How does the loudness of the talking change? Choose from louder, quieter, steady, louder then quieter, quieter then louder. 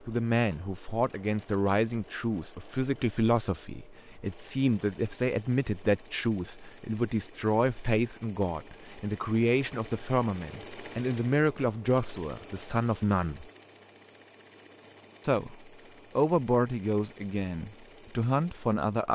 steady.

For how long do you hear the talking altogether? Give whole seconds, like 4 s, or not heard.
17 s.